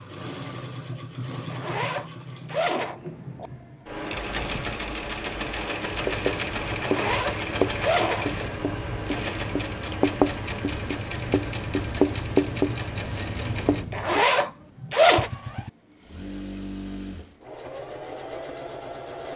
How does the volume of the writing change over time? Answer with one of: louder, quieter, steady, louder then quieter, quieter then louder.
quieter then louder.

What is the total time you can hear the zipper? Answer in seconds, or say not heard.
5 s.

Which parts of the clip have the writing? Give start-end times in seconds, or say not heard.
5.8-14.2.